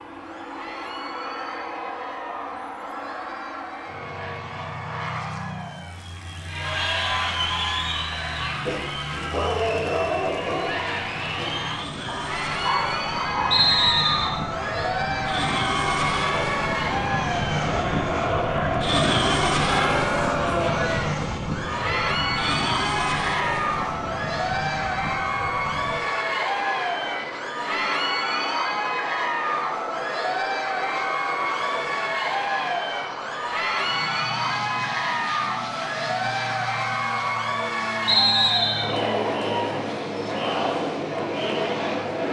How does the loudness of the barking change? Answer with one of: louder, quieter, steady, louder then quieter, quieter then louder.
quieter then louder.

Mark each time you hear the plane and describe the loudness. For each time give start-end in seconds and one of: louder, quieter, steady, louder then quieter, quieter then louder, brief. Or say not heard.
0.0-42.2 louder then quieter.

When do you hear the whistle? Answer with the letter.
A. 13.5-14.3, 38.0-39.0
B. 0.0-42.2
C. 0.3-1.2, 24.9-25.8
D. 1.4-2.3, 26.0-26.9
A.